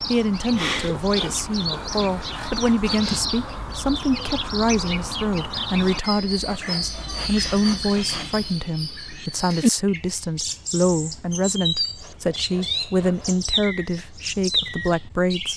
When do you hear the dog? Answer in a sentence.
You can't hear the dog here.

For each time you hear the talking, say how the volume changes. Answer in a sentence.
You can hear the talking from 0.1 to 15.5 s, at a steady volume.